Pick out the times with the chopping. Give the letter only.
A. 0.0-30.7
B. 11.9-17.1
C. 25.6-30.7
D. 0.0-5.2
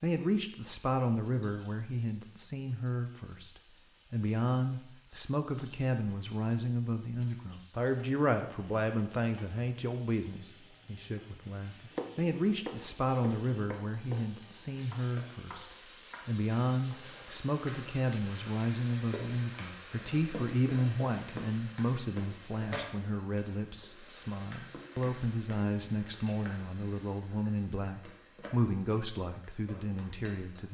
B.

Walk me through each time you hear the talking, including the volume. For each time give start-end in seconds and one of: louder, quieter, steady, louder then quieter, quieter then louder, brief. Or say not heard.
0.0-30.7 steady.